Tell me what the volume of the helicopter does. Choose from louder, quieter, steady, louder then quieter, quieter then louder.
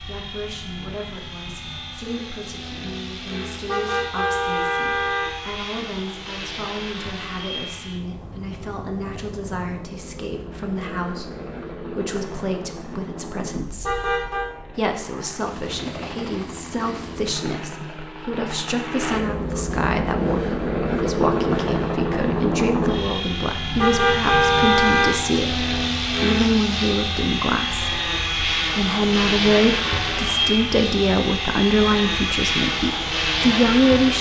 louder.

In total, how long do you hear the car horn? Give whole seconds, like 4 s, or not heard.
4 s.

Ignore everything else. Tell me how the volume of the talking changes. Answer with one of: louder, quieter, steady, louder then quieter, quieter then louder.
louder.